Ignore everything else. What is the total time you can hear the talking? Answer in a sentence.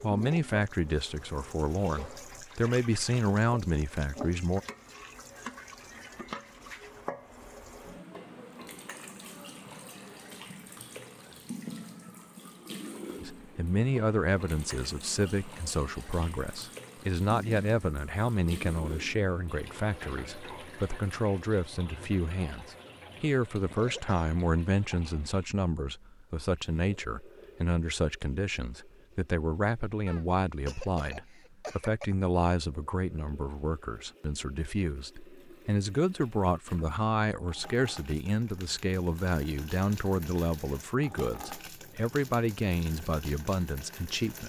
The talking can be heard for 36 seconds in total.